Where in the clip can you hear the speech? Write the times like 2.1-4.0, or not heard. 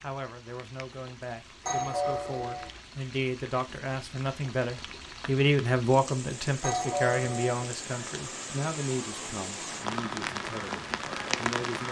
0.0-11.8.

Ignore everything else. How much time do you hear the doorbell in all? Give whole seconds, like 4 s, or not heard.
2 s.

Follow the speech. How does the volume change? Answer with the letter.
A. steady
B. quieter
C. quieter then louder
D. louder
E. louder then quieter
E.